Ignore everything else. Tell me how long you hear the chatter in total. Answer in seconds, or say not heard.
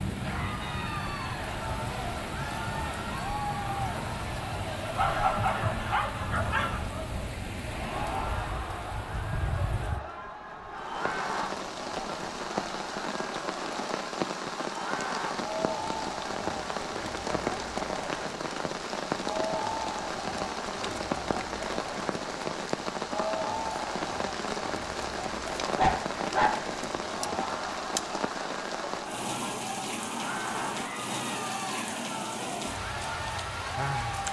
34 s.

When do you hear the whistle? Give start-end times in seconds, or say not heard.
not heard.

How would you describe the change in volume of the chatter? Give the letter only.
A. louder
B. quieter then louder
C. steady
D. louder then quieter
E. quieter
C.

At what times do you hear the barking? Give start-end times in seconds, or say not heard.
5.0-6.8, 25.8-27.4.